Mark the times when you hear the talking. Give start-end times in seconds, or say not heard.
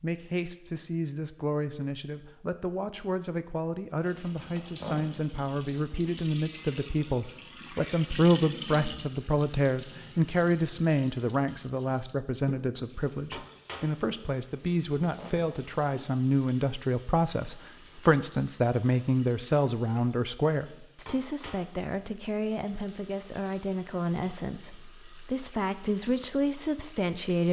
0.0-27.4.